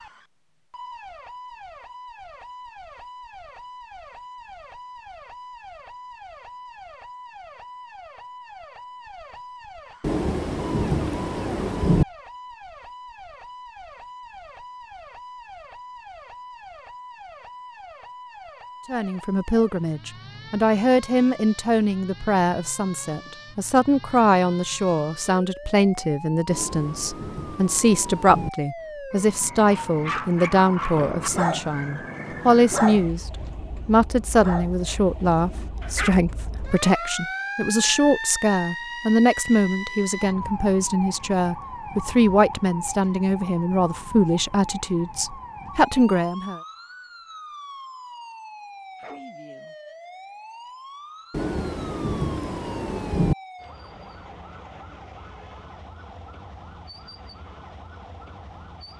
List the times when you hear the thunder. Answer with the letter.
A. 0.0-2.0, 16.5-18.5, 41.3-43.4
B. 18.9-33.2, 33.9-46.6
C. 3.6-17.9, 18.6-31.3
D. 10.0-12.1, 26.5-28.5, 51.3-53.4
D.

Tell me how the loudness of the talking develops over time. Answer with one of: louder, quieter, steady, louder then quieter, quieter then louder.
steady.